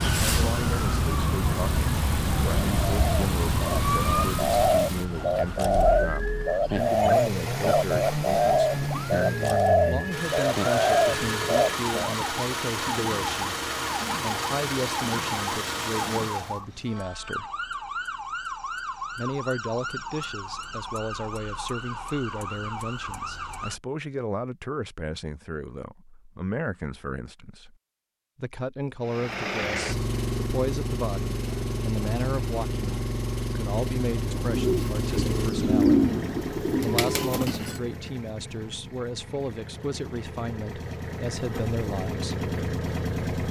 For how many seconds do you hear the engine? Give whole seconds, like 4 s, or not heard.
31 s.